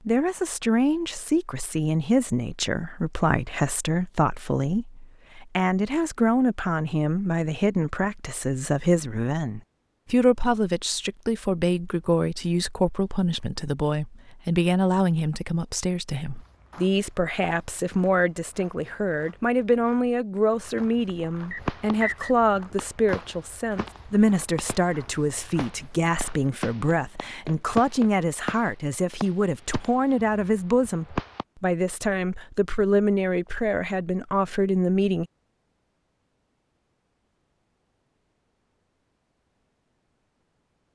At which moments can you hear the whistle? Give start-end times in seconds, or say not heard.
21.5-22.4.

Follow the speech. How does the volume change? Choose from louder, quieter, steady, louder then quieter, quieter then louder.
steady.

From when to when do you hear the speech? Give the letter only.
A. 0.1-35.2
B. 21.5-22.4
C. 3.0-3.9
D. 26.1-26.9
A.